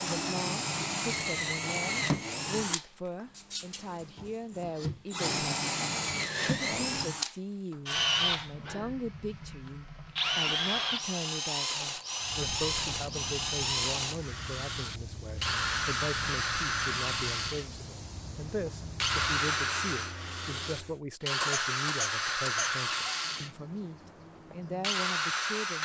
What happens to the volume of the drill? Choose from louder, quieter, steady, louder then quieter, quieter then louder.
steady.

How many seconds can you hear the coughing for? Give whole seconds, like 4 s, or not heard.
2 s.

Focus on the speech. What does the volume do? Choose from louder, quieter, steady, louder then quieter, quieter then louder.
steady.